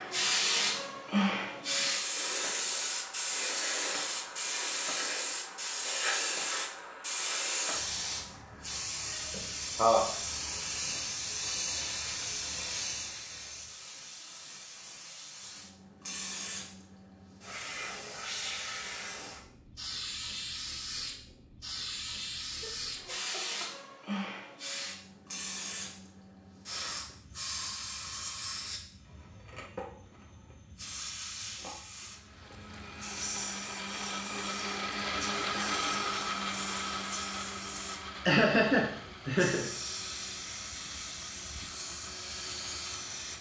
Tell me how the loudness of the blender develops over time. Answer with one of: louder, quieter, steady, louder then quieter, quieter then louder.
louder then quieter.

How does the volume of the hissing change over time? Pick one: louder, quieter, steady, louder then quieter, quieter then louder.
quieter.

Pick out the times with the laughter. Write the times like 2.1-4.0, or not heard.
9.3-10.1, 22.6-23.6, 38.2-39.6.